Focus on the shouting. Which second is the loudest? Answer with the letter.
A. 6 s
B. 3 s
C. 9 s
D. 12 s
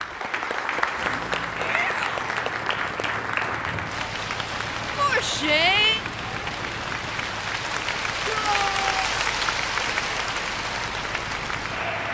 A.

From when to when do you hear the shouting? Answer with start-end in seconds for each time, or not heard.
1.6-2.4, 5.0-6.0, 8.2-9.1.